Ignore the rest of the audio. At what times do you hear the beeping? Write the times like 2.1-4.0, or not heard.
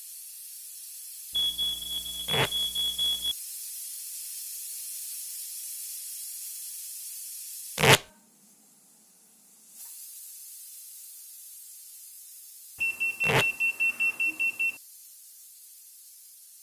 1.3-3.4, 12.8-14.8.